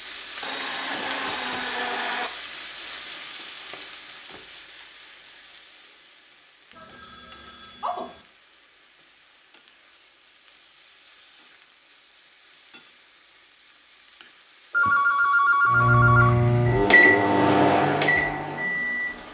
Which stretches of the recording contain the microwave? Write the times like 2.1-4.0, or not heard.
15.7-19.2.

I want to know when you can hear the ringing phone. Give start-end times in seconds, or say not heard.
0.4-2.3, 6.8-8.2, 14.7-16.3.